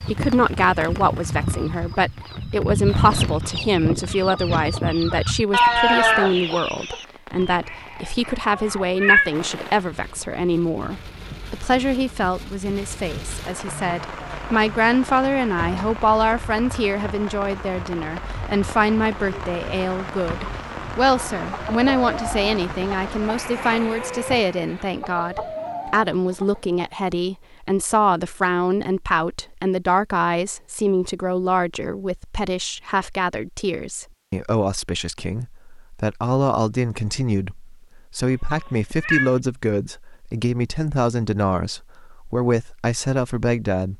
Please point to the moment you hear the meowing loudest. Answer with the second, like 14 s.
9 s.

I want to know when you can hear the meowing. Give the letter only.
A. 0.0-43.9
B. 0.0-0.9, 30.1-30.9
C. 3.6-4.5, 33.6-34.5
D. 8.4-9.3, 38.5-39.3
D.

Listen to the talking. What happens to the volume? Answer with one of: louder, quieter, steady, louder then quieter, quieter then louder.
steady.